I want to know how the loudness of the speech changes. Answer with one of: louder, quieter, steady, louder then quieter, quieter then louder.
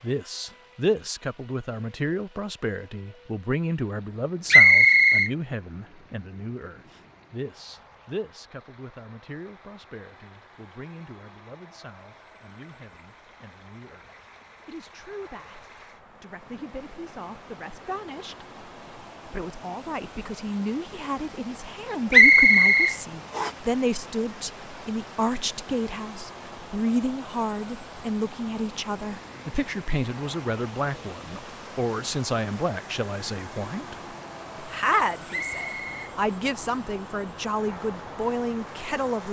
quieter then louder.